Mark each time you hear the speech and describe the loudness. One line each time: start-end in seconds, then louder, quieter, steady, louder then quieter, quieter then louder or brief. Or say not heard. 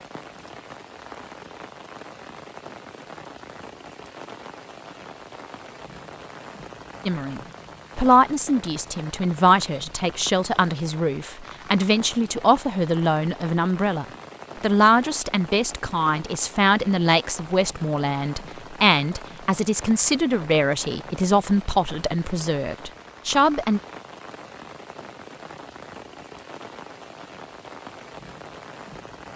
7.0-23.8 steady.